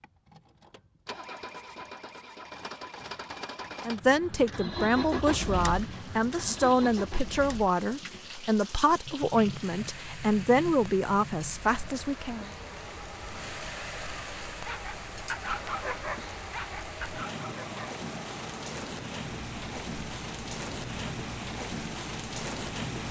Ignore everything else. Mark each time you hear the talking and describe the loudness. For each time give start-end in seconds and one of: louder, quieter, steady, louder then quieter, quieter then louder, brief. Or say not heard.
3.9-12.5 steady.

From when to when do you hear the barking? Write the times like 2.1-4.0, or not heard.
14.7-17.9.